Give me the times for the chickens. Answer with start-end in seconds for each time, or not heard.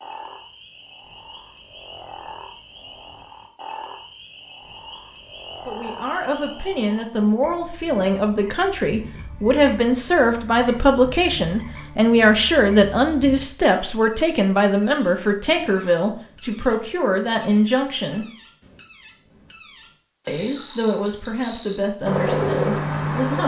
not heard.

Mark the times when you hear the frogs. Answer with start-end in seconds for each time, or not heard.
0.0-23.4.